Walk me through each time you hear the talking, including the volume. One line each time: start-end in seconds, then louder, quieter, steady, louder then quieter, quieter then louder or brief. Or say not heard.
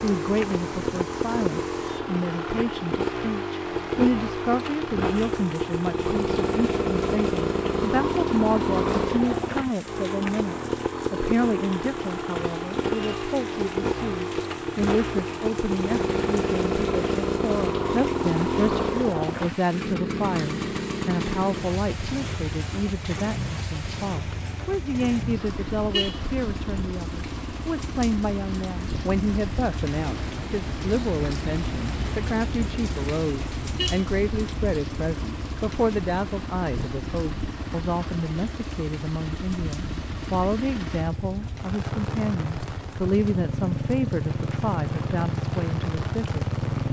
0.0-46.8 steady.